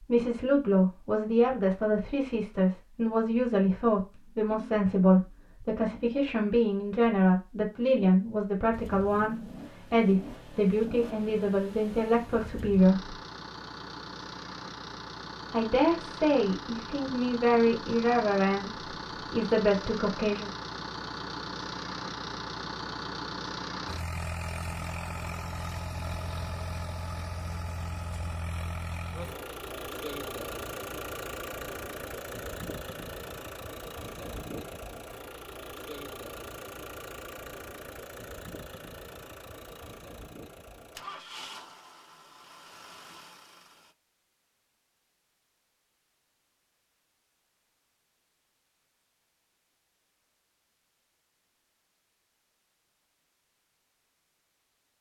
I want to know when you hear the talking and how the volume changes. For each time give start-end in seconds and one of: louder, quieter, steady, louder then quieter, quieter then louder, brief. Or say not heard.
0.0-13.2 steady
15.5-20.5 steady.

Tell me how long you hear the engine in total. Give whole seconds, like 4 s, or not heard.
35 s.